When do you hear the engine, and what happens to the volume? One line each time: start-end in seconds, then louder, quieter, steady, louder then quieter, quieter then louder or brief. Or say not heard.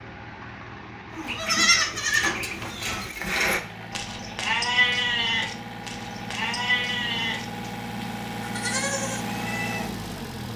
0.0-10.5 louder.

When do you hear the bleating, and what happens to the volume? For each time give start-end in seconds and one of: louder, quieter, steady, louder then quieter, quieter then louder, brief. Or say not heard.
1.1-9.9 quieter.